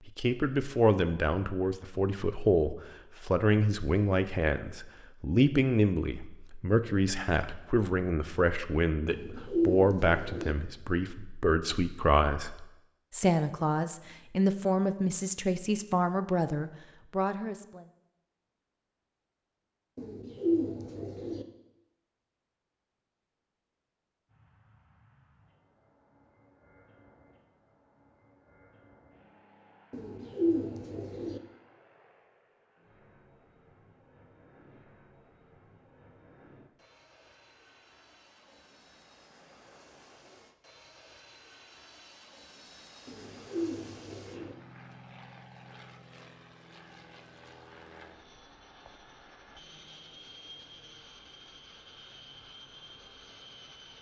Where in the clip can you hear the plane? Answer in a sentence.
You can hear the plane from 24.2 to 53.9 s.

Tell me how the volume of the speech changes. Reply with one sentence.
The loudness of the speech stays about the same.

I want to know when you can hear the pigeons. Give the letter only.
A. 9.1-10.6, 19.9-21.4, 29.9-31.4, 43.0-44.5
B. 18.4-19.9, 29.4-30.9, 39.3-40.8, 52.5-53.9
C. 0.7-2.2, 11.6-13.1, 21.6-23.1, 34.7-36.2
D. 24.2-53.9
A.